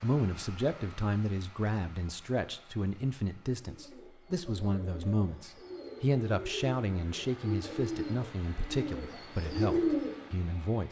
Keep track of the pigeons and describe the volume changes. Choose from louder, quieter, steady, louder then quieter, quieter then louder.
louder.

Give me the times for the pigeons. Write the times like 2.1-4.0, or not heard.
3.5-10.2.